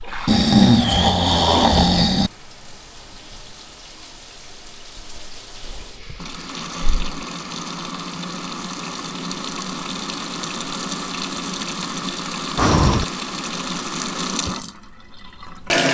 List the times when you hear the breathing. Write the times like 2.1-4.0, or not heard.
0.2-2.3, 5.6-7.2, 12.6-13.1.